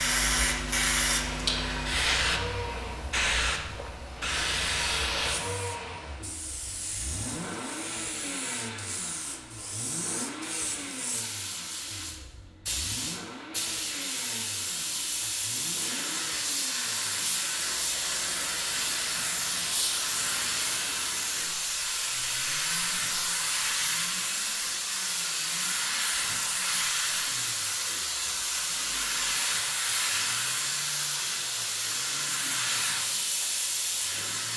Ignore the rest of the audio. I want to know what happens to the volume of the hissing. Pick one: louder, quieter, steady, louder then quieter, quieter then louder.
quieter then louder.